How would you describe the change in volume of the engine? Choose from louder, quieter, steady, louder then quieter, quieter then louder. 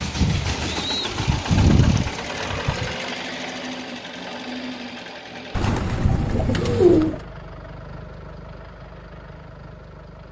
quieter.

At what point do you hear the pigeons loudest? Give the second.
7 s.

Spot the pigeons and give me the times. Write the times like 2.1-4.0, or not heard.
0.2-3.0, 5.5-7.2.